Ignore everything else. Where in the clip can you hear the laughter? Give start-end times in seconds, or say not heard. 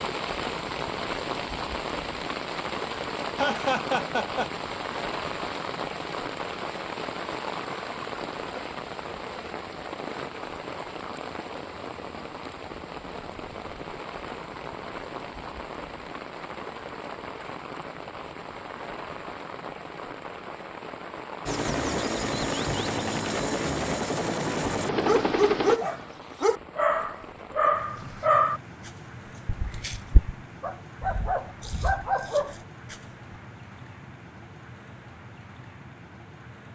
3.4-4.5.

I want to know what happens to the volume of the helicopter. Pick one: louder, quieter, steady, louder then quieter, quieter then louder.
steady.